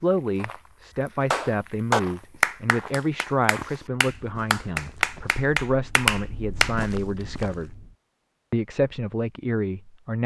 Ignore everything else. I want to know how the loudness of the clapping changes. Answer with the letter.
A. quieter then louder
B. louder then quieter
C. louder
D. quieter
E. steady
A.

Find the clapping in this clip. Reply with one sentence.
You can hear the clapping from 1.3 to 6.8 s.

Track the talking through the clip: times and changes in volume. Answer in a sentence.
The talking can be heard from 0.0 to 7.8 s, at a steady volume; and briefly from 8.5 to 10.2 s.